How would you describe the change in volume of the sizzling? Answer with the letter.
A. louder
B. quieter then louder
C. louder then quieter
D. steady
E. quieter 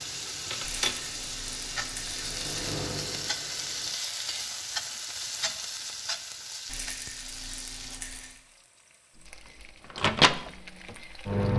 E.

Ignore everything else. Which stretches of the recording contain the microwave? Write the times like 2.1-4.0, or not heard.
0.0-4.0, 9.2-11.5.